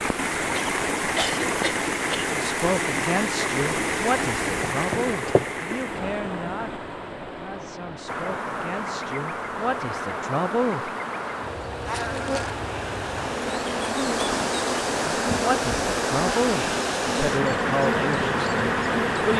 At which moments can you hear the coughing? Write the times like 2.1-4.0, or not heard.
0.5-2.4.